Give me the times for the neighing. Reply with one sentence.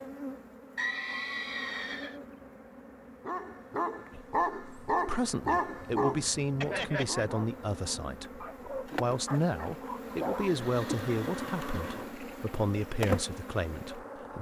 The neighing can be heard from 0.8 to 2.1 s, from 6.6 to 7.3 s and from 10.4 to 12.2 s.